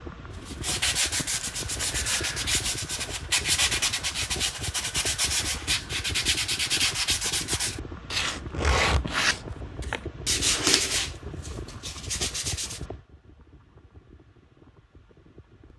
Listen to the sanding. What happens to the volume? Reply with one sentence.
The volume of the sanding stays about the same.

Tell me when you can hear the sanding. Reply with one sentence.
You can hear the sanding from 0.5 to 12.8 s.